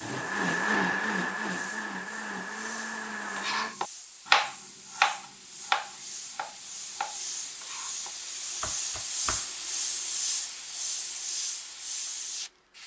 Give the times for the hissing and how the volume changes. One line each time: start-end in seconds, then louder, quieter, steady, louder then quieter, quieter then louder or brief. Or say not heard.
0.0-12.8 louder.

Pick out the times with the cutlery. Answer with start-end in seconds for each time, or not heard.
not heard.